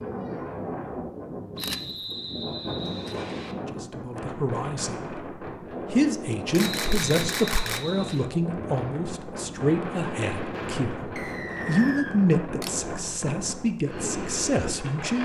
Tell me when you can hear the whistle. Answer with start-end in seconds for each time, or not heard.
1.6-3.5, 6.6-8.3, 11.2-12.2.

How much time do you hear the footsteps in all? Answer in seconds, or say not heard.
not heard.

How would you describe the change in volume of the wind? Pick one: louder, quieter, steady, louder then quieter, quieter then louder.
steady.